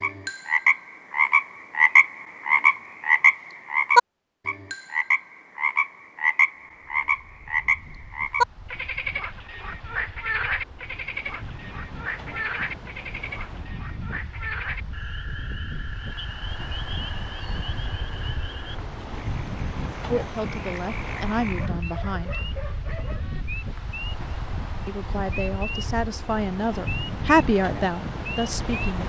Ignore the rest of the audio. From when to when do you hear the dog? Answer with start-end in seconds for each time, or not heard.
21.4-23.4.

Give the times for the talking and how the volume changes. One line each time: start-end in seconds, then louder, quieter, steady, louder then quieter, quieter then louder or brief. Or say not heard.
20.1-22.4 brief
24.9-29.0 louder then quieter.